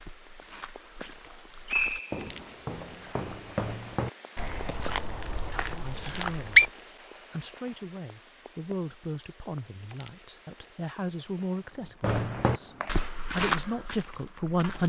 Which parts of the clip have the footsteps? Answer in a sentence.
The footsteps can be heard from 0.0 to 6.7 s and from 12.0 to 14.8 s.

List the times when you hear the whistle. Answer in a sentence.
The whistle can be heard from 1.2 to 2.5 s, from 6.1 to 6.7 s and from 12.1 to 13.1 s.